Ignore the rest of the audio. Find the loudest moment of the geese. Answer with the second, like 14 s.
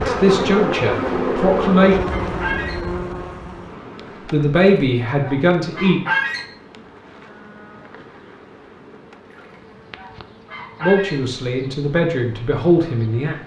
6 s.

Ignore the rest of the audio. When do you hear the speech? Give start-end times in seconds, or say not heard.
0.0-2.0, 4.2-6.0, 10.8-13.3.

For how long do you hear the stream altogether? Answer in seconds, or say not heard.
not heard.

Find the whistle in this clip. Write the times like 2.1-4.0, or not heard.
not heard.